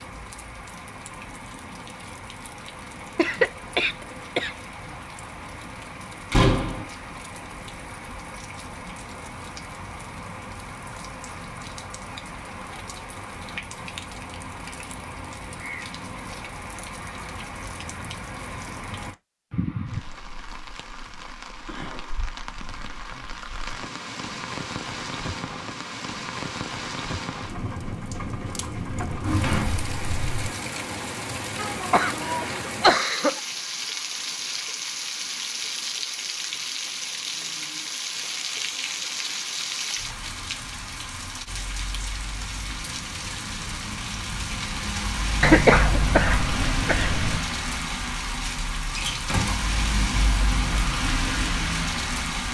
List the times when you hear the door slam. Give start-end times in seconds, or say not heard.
6.3-6.8, 29.1-30.5, 48.9-49.5.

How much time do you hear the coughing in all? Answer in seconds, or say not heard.
5 s.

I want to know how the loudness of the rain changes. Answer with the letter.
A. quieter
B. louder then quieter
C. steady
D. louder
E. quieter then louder
D.